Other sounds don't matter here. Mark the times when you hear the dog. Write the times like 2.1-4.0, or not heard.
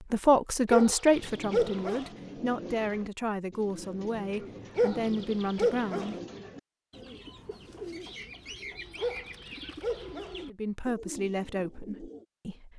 0.7-2.1, 4.8-6.2, 9.0-10.4.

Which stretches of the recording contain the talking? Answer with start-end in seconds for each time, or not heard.
0.1-6.2, 10.4-12.7.